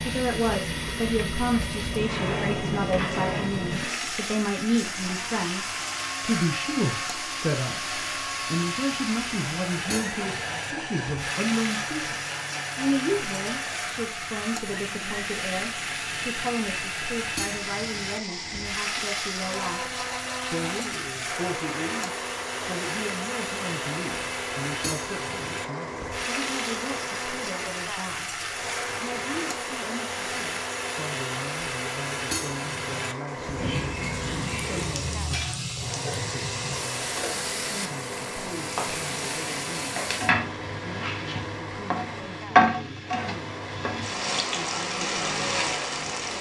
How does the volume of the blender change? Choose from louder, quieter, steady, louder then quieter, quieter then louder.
steady.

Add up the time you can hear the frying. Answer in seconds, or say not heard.
46 s.